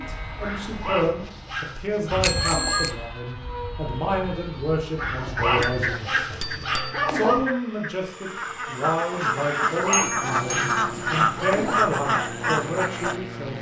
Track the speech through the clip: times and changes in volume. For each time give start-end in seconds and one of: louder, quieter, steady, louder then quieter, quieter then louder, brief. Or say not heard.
0.0-13.5 steady.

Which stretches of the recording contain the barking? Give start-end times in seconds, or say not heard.
0.4-3.0, 5.0-7.5, 9.4-11.9.